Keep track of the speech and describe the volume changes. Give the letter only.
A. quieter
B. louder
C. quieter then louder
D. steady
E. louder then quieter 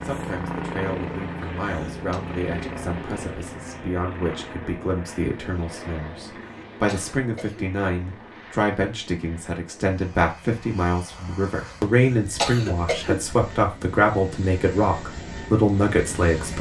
B.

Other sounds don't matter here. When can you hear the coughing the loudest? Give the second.
13 s.